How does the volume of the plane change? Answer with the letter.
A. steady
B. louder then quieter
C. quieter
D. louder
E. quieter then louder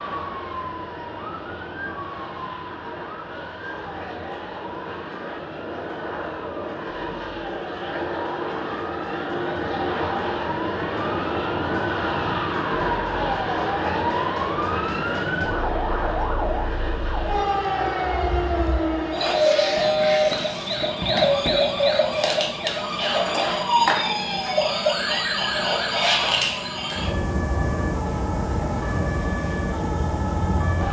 B.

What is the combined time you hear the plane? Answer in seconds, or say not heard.
31 s.